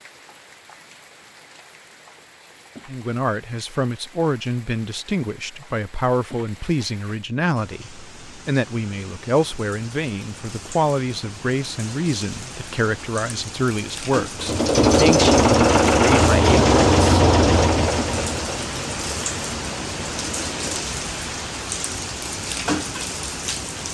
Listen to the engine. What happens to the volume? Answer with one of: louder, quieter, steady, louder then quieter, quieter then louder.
quieter.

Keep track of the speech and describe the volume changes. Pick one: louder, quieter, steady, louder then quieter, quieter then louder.
steady.